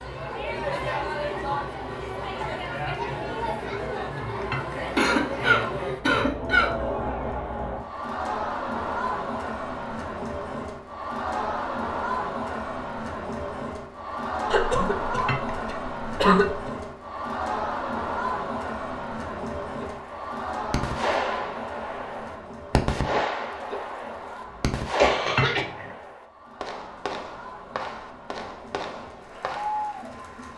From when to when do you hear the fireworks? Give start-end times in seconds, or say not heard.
19.6-29.8.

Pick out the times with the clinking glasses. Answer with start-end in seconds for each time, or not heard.
4.4-4.8, 15.2-15.8, 25.2-25.9.